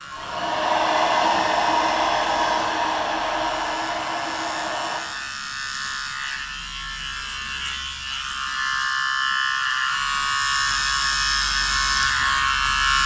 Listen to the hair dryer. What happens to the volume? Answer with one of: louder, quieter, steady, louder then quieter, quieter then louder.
quieter.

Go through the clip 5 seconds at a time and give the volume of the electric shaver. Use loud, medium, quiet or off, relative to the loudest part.
quiet, medium, loud.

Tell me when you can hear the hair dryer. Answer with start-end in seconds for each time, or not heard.
0.0-5.0.